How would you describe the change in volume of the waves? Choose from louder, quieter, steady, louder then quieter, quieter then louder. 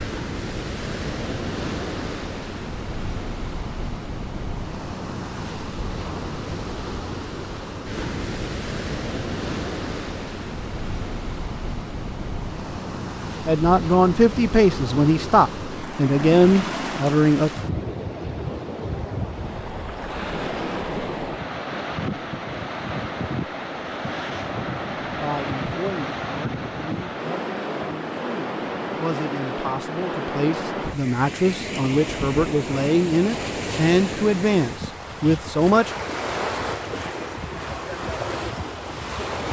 steady.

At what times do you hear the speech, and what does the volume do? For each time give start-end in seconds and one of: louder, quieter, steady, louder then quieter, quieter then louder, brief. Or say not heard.
13.4-17.5 steady
25.2-35.9 louder.